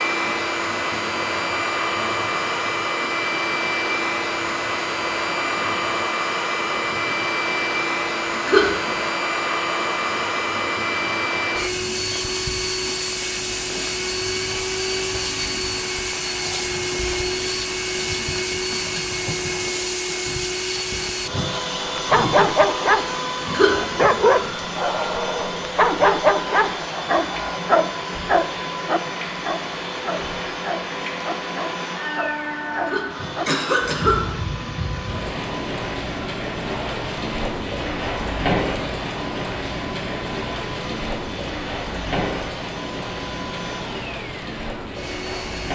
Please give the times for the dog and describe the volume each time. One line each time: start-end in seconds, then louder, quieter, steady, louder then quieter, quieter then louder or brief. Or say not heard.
21.9-33.5 quieter.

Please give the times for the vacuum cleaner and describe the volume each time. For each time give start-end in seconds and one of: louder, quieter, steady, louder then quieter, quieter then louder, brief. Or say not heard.
0.0-45.7 quieter.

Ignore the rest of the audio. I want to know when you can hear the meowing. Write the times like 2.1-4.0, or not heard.
not heard.